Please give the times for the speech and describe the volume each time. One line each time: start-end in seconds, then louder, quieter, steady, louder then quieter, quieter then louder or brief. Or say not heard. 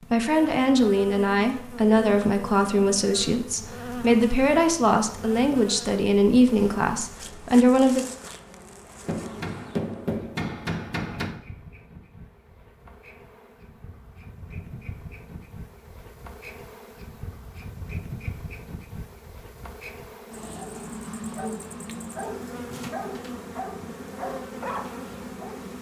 0.1-8.1 steady.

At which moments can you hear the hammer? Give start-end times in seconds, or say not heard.
9.1-11.4.